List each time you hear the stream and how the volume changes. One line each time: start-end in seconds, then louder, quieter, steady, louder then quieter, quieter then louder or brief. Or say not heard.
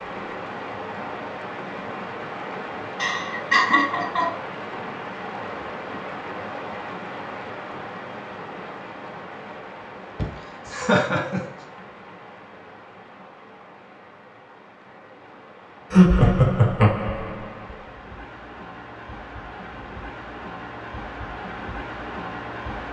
0.0-22.8 quieter then louder.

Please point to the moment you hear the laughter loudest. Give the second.
16 s.